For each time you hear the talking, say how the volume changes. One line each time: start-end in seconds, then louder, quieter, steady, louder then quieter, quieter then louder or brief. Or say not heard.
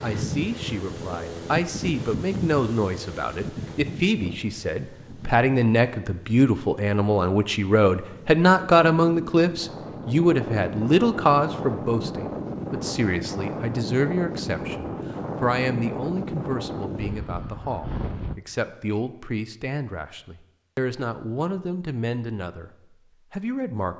0.0-22.7 louder then quieter
23.3-23.9 brief.